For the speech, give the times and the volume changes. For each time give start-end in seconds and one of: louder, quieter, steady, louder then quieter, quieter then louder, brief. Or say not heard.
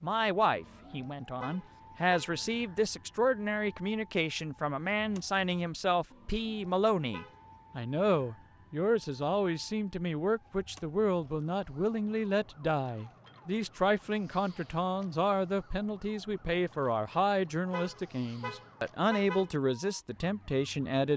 0.0-21.1 steady.